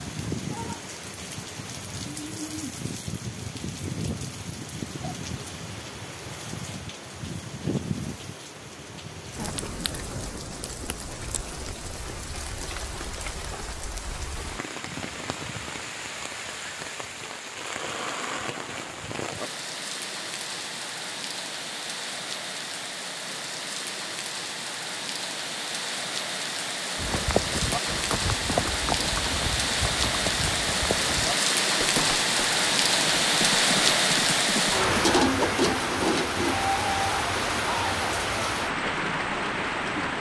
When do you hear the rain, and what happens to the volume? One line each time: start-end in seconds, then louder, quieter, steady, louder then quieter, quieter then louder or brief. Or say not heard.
0.0-40.1 louder.